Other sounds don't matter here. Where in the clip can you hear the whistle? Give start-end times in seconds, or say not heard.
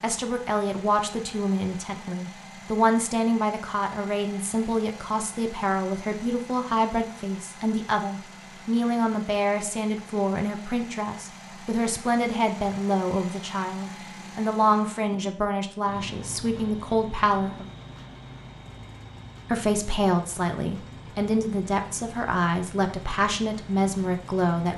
not heard.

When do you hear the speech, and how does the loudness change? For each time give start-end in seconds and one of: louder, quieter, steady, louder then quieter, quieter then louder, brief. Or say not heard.
0.0-17.6 steady
19.5-24.7 steady.